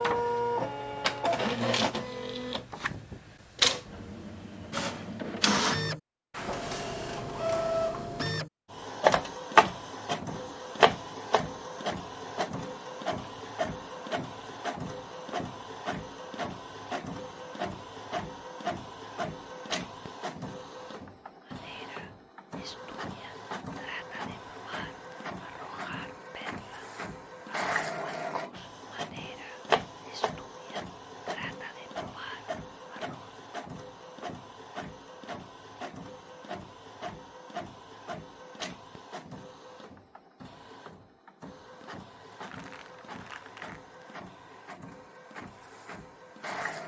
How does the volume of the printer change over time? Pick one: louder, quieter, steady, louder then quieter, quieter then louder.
quieter.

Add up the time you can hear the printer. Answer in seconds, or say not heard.
47 s.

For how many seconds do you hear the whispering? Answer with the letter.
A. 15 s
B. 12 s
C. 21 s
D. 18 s
B.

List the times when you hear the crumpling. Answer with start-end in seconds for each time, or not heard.
42.3-43.8.